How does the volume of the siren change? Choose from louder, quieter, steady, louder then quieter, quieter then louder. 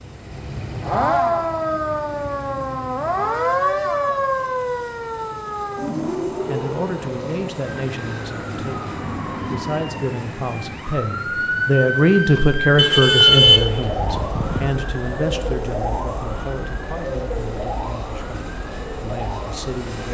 quieter.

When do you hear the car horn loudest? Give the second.
13 s.